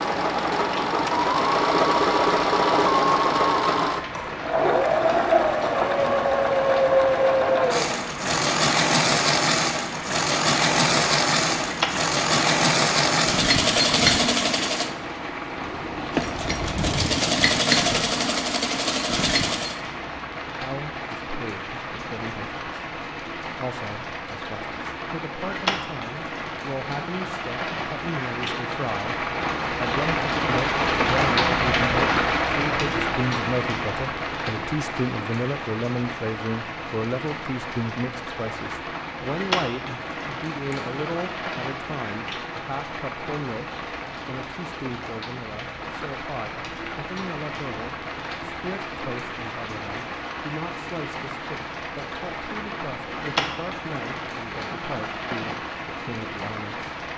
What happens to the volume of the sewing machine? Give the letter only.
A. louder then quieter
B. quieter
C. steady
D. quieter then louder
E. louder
C.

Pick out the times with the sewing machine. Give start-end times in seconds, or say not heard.
0.0-19.8.